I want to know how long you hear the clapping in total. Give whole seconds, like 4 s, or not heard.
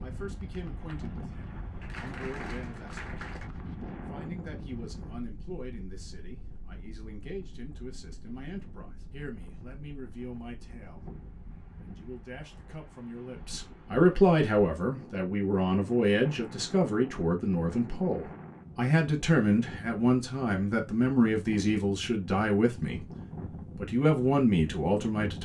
2 s.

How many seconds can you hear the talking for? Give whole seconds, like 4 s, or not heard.
23 s.